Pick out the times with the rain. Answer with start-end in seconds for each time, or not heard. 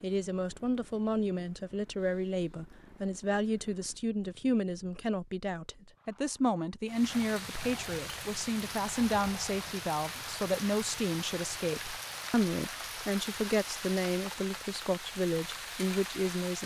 6.8-16.6.